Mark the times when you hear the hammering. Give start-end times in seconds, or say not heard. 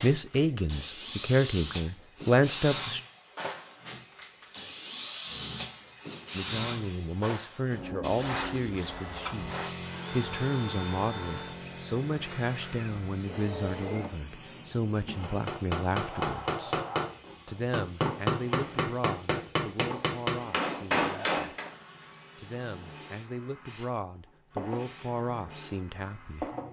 15.2-21.7.